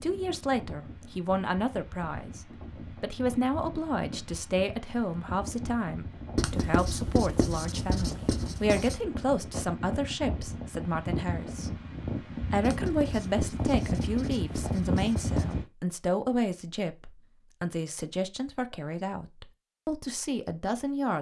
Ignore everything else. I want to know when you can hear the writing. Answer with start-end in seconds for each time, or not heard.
6.3-9.0, 12.6-15.6.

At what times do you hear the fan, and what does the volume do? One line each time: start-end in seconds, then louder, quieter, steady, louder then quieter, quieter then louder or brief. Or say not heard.
0.0-15.7 louder.